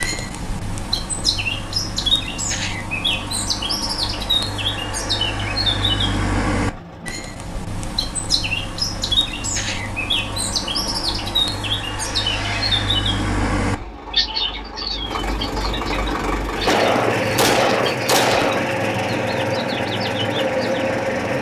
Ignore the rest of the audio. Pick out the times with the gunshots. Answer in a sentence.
The gunshots can be heard from 16.6 to 18.6 s.